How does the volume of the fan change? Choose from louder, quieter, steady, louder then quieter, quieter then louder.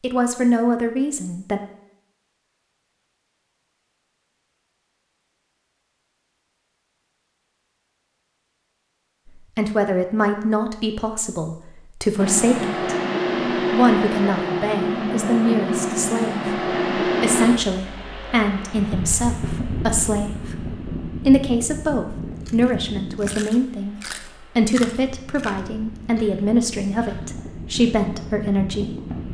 quieter.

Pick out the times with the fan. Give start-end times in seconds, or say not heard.
12.2-29.2.